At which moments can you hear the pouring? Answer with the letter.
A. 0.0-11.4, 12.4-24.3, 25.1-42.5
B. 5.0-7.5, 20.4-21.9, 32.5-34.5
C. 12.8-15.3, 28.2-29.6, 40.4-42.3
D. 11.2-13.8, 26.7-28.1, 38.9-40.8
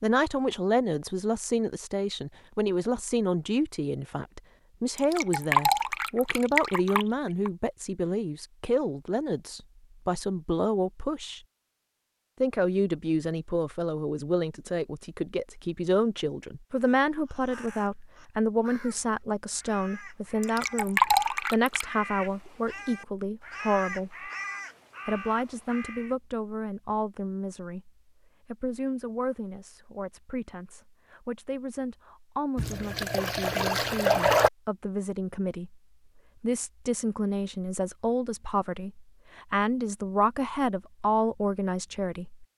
B.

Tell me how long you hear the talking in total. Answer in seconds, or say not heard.
41 s.